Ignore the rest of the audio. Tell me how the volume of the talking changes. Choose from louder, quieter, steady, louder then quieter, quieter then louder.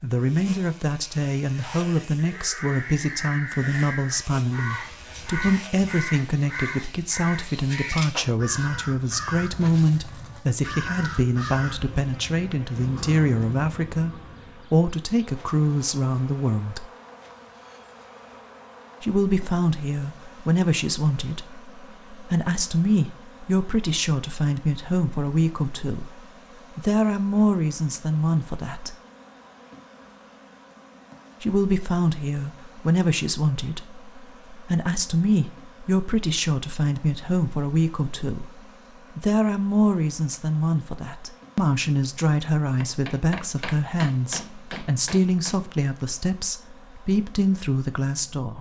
steady.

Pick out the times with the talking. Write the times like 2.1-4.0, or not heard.
0.0-16.9, 19.0-28.9, 31.4-48.5.